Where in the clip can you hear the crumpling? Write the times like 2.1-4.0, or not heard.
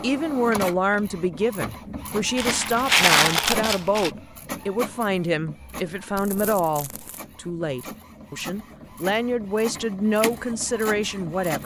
2.4-4.1, 6.2-7.2.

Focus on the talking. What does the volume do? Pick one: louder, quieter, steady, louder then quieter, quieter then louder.
quieter then louder.